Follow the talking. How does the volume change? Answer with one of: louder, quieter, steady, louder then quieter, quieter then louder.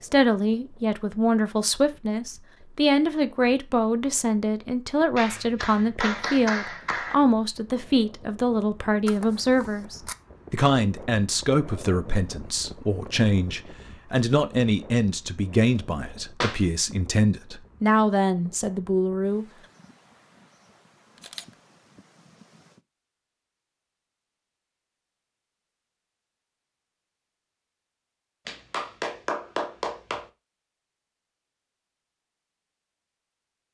steady.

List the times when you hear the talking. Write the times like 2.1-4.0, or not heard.
0.0-19.4.